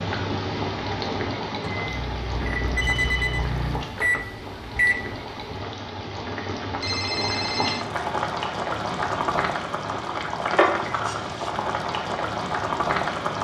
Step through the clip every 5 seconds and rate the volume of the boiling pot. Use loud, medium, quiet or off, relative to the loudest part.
medium, loud, loud.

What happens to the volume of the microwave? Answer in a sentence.
The loudness of the microwave goes up.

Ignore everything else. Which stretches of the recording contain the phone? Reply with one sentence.
You can hear the phone from 2.5 to 3.5 s and from 6.8 to 7.8 s.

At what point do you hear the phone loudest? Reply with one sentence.
The loudest moment of the phone is at 3 seconds.